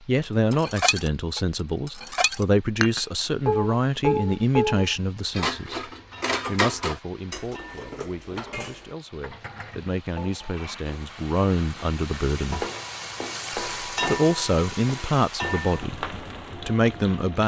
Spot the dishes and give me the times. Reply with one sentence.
The dishes can be heard from 0.2 to 10.8 s.